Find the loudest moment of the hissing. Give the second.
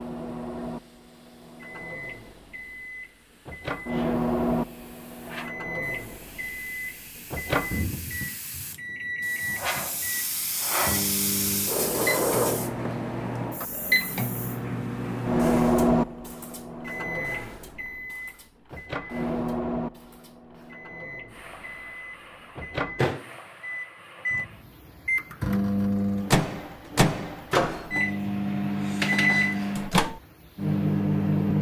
12 s.